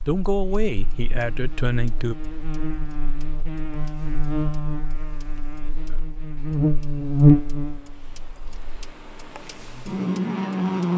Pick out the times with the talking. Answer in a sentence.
You can hear the talking from 0.1 to 2.1 s.